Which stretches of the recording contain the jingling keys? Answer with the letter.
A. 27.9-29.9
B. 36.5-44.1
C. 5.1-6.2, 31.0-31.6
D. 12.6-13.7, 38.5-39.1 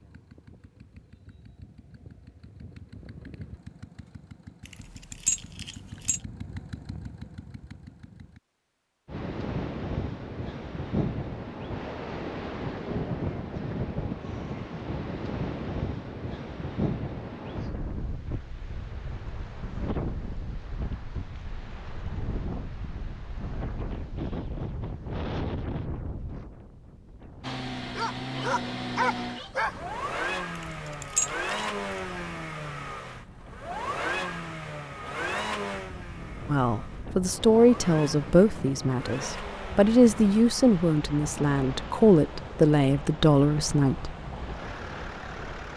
C.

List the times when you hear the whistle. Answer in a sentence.
The whistle can't be heard in this clip.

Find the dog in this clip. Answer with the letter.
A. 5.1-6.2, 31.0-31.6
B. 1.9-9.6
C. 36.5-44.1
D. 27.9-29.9
D.